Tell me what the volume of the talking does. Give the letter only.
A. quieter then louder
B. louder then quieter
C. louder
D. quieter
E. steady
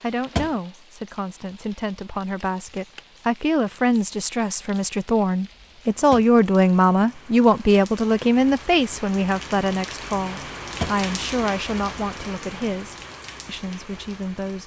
B.